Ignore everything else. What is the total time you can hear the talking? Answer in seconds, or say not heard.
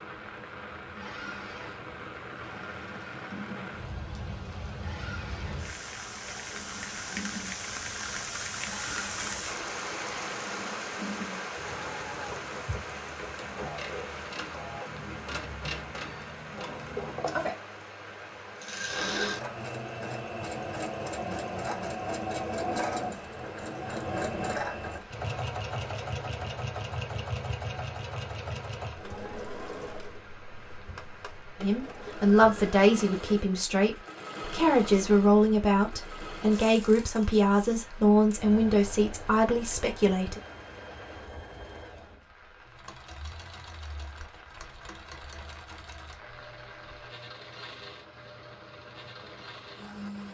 9 s.